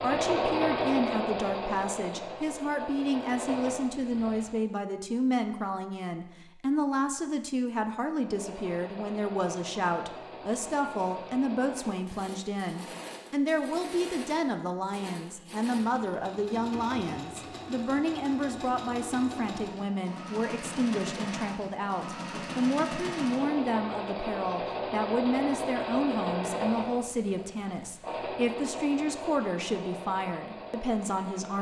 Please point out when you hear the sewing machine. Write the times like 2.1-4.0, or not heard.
0.0-4.6, 8.2-31.5.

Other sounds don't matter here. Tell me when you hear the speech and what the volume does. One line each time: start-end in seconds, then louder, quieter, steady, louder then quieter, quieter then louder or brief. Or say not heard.
0.0-31.5 steady.